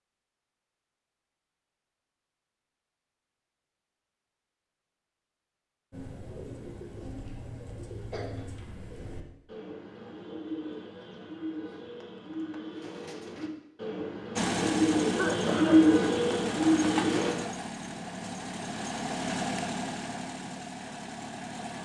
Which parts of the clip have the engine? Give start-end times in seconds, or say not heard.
14.3-21.7.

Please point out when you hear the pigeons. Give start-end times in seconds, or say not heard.
5.9-17.4.